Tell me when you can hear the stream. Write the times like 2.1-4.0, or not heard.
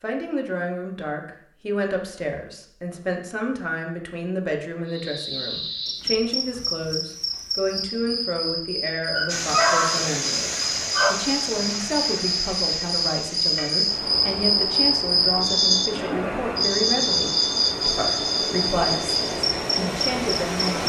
9.2-20.8.